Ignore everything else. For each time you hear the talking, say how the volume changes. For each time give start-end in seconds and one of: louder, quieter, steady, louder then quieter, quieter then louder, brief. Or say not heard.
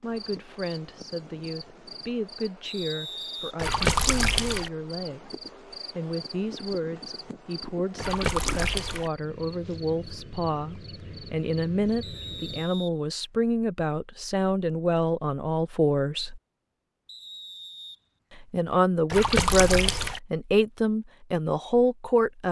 0.0-16.4 louder
18.4-22.4 steady.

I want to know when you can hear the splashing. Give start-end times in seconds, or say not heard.
3.5-4.7, 8.0-9.1, 19.1-20.2.